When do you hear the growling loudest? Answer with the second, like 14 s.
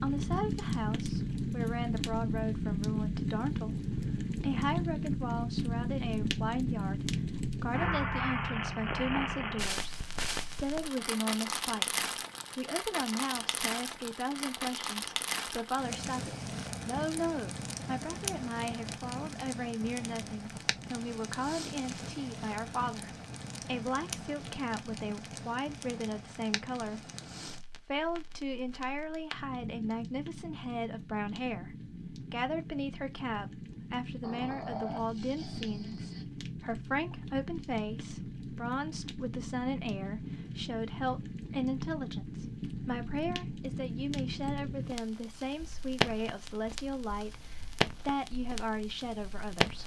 35 s.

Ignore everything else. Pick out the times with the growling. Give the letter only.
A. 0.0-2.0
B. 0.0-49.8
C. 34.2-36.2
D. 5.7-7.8
C.